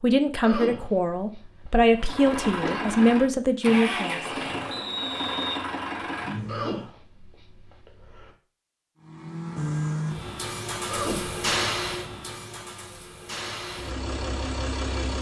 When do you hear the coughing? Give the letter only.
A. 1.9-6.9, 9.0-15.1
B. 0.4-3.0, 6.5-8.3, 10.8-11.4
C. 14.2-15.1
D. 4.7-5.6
B.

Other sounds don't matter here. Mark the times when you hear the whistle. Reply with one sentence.
The whistle can be heard from 4.7 to 5.6 s.